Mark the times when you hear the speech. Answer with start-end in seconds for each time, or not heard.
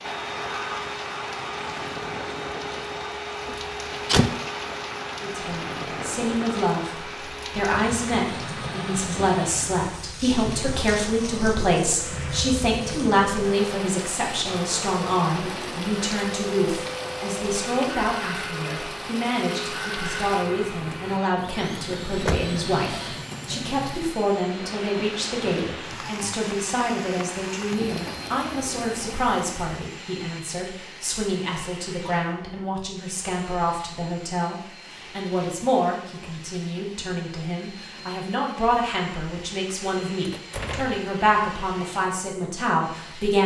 5.2-43.4.